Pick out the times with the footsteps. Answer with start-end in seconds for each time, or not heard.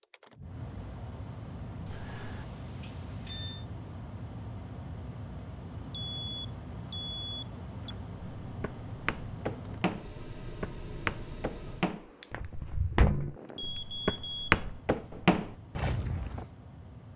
7.9-16.5.